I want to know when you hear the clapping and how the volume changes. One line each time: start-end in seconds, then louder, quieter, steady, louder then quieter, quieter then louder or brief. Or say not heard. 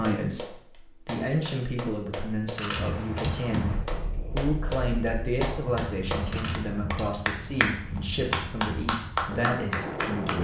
0.0-10.4 louder.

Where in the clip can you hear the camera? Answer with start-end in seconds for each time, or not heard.
2.5-3.4, 6.2-7.1.